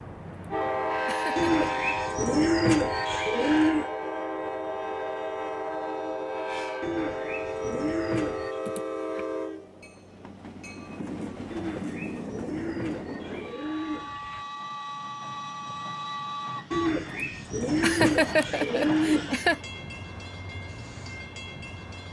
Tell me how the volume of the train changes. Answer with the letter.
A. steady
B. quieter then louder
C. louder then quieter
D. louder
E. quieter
E.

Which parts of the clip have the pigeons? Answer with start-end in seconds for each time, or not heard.
1.4-3.9, 6.8-8.6, 11.5-14.4, 16.7-19.4.